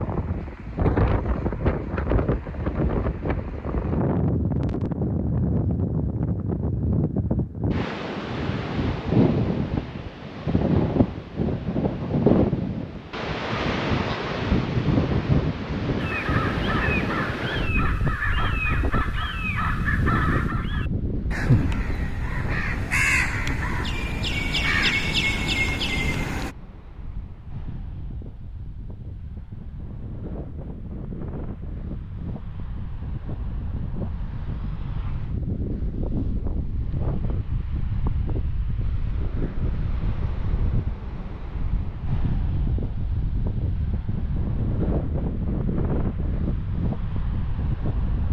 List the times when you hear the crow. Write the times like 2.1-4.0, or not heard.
15.9-26.6.